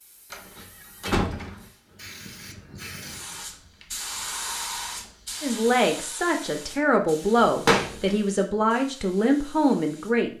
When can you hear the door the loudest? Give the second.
8 s.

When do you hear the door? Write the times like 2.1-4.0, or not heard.
0.3-1.6, 7.5-8.2.